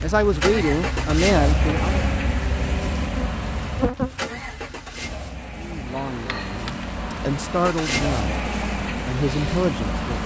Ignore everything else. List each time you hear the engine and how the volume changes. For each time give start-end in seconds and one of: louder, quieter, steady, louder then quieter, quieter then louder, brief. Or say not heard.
0.0-10.2 quieter then louder.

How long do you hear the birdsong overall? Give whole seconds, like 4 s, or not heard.
not heard.